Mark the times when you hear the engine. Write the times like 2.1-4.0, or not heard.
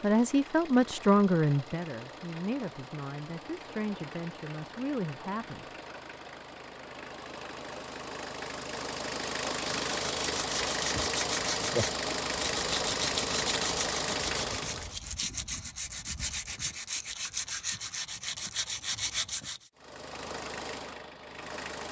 0.0-14.9, 19.8-21.8.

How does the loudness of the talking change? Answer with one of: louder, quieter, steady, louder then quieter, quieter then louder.
quieter.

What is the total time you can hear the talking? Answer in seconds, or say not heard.
6 s.